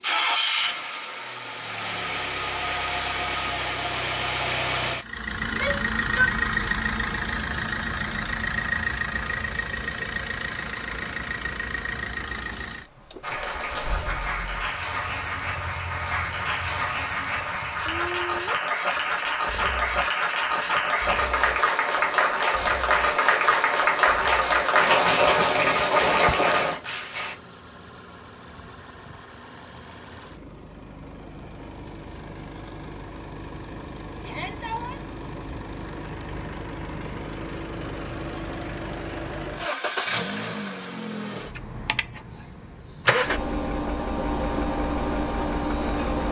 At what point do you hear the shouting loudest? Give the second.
6 s.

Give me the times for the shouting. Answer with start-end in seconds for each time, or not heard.
5.4-6.3, 34.2-35.0.